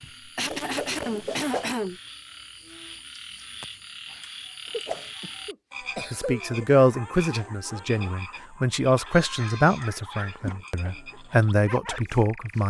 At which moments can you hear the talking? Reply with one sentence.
The talking can be heard from 6.1 to 12.6 s.